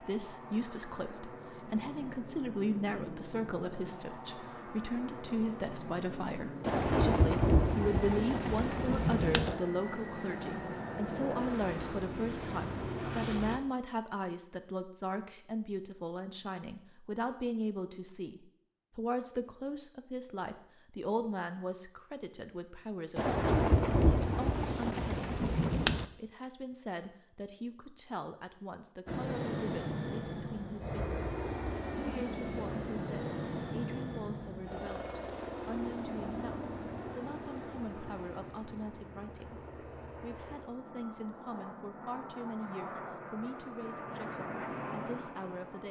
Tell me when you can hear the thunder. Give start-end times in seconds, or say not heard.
6.6-9.6, 23.1-26.1.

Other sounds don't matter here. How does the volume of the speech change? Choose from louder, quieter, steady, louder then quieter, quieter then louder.
quieter.